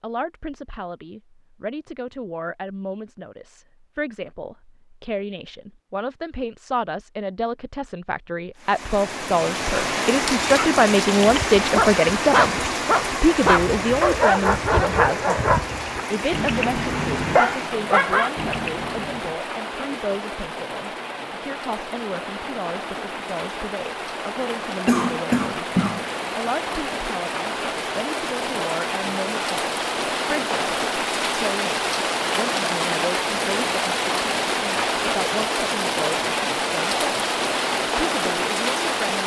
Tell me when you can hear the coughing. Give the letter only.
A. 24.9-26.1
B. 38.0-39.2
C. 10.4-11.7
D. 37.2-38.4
A.